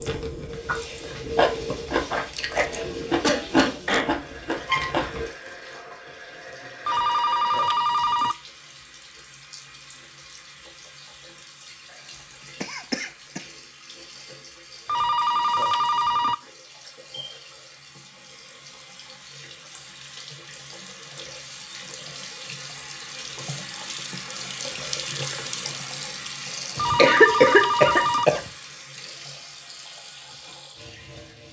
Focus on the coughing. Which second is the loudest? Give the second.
27 s.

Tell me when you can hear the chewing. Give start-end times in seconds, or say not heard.
0.0-5.2.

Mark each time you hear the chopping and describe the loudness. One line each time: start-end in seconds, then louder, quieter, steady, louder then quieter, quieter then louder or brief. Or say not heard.
not heard.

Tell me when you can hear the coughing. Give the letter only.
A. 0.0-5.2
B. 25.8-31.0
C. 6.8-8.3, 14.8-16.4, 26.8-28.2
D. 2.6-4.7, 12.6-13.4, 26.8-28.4
D.